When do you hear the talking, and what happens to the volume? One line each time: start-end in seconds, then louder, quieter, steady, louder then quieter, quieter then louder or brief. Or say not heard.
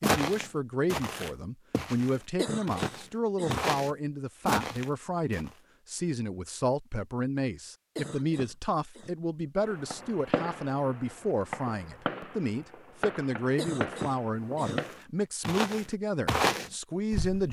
0.0-17.4 steady.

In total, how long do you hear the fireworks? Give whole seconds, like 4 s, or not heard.
5 s.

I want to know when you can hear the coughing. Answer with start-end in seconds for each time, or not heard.
2.4-3.6, 8.0-9.2, 13.6-14.9.